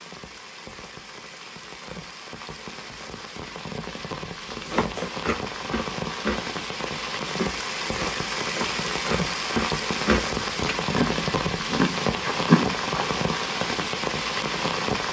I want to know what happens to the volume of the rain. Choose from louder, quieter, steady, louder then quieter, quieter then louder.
louder.